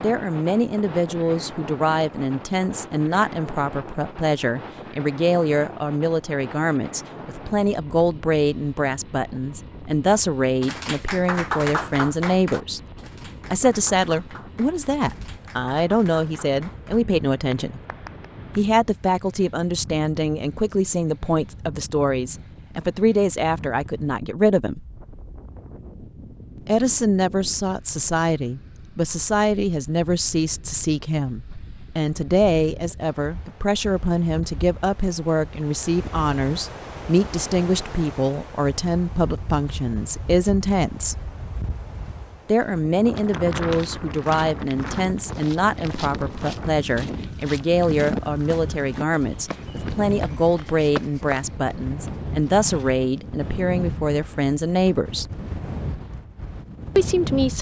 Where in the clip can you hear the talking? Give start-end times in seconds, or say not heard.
0.0-12.8, 13.5-17.8, 18.6-24.8, 26.6-41.2, 42.5-55.3, 57.0-57.5.